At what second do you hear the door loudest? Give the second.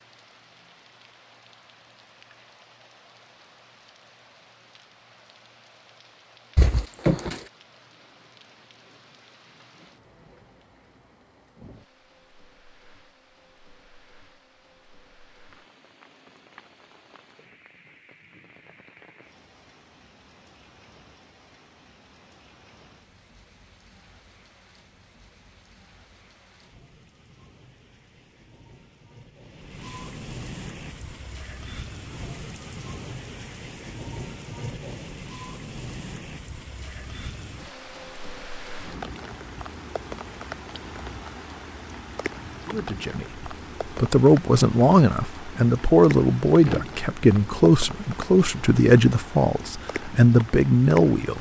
7 s.